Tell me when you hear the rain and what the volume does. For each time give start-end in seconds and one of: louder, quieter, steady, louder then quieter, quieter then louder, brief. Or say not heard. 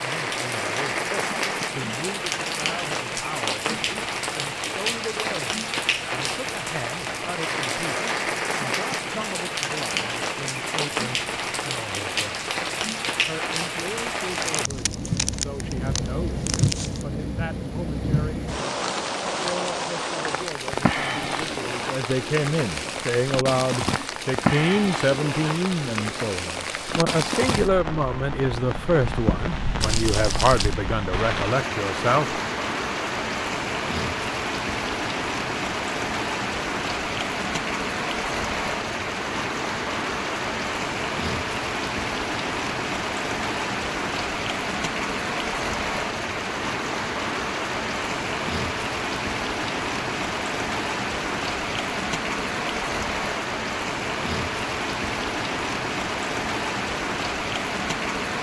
0.0-58.3 steady.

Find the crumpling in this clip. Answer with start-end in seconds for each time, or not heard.
14.3-17.1, 29.8-30.8.